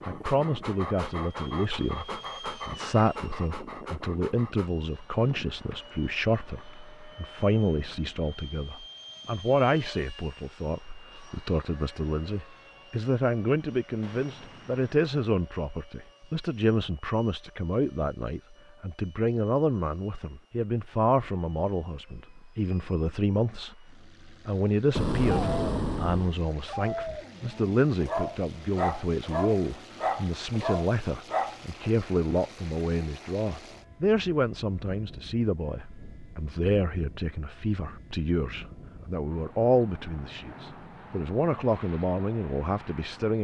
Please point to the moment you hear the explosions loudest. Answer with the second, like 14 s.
25 s.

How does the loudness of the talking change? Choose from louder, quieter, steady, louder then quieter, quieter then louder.
steady.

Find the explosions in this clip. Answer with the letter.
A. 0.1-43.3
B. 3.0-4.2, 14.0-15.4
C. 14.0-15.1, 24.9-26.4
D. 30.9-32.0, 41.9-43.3
C.